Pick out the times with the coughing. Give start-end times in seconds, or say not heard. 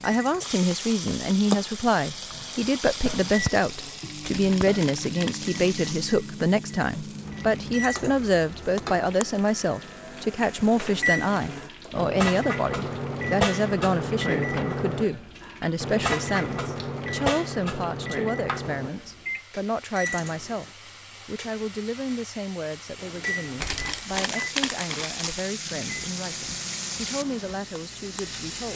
not heard.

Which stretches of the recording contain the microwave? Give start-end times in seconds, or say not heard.
0.0-20.8, 22.9-28.5.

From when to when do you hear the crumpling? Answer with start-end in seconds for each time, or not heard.
4.2-5.9, 23.6-25.4.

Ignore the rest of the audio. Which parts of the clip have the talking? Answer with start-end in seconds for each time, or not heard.
0.0-20.6, 21.2-28.7.